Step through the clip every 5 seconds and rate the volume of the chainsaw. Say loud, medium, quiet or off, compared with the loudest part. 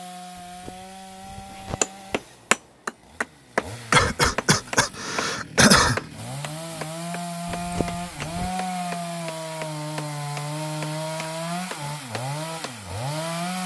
quiet, loud, loud.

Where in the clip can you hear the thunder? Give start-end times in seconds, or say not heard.
not heard.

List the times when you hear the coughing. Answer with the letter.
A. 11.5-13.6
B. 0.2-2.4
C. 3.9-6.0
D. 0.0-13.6
C.